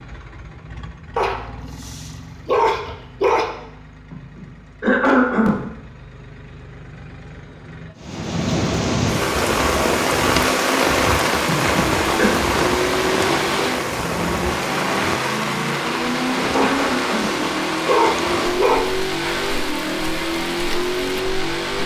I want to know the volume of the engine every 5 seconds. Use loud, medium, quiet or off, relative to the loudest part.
quiet, quiet, loud, loud, loud.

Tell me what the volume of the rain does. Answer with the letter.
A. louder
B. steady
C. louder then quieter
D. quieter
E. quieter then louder
D.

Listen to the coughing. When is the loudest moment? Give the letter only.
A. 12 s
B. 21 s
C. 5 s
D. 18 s
C.